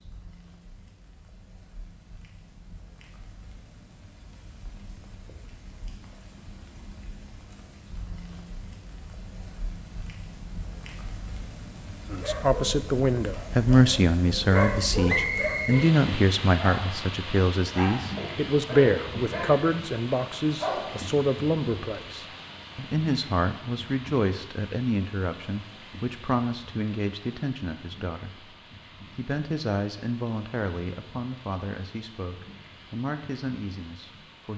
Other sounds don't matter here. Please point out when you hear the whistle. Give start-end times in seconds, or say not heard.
15.1-15.8.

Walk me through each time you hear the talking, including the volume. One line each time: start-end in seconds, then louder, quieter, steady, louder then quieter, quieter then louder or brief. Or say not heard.
12.1-34.5 quieter.